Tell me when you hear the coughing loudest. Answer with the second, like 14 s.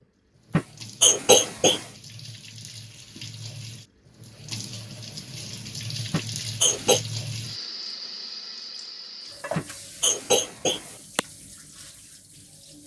1 s.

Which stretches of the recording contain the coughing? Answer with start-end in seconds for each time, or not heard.
0.5-1.9, 6.1-7.0, 9.6-11.2.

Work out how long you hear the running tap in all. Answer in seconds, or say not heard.
13 s.